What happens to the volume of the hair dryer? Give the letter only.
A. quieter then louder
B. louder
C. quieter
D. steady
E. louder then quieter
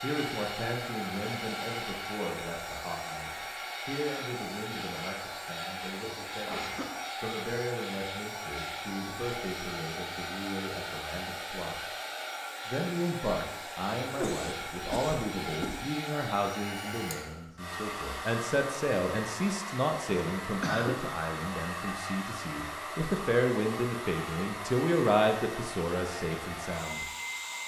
D.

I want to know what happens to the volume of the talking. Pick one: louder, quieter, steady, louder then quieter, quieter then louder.
louder.